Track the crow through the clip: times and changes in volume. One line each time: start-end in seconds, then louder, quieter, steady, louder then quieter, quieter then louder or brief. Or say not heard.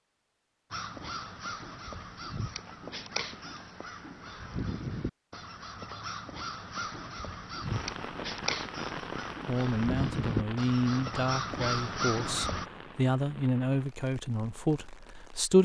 0.7-12.7 louder.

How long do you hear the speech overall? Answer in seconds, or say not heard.
6 s.